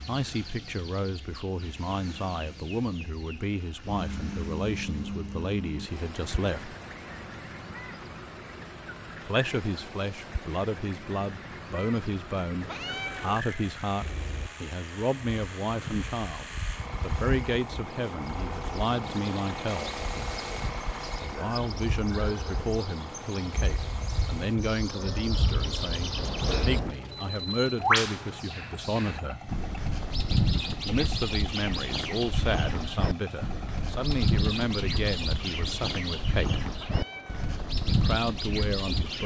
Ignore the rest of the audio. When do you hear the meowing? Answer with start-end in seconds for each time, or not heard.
12.6-13.4, 36.7-37.5.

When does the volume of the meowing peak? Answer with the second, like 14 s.
13 s.